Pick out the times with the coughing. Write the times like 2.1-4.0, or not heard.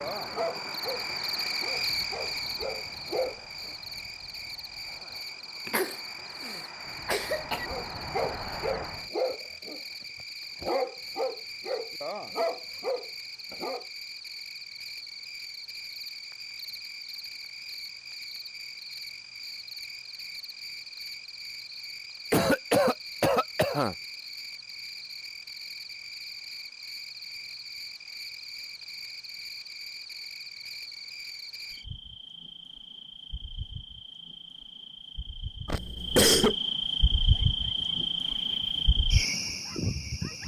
5.7-7.7, 22.3-23.9, 35.6-36.5.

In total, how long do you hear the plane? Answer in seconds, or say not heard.
9 s.